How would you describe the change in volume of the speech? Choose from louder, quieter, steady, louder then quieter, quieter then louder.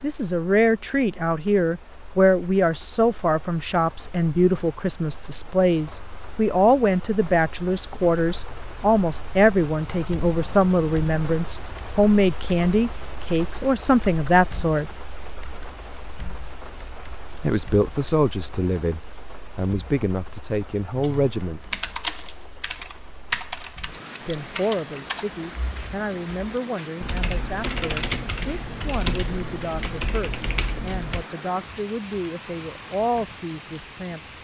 quieter.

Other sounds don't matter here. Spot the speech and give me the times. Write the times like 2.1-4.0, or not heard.
0.0-14.9, 17.4-21.8, 24.2-34.3.